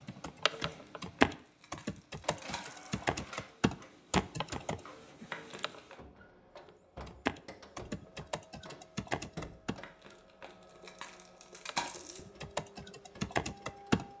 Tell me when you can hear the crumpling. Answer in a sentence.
The crumpling can be heard from 0.7 to 3.0 s, from 5.3 to 6.0 s and from 9.8 to 12.2 s.